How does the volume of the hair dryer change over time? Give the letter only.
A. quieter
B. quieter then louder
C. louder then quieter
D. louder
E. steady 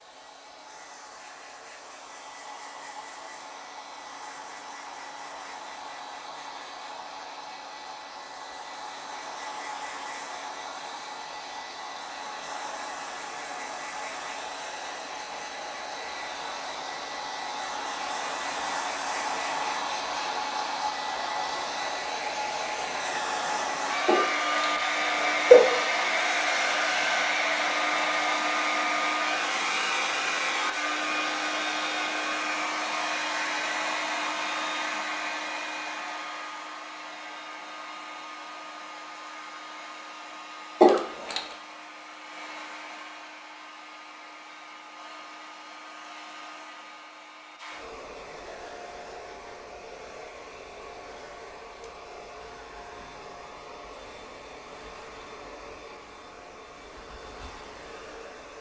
C.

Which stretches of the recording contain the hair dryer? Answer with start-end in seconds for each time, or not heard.
0.0-58.5.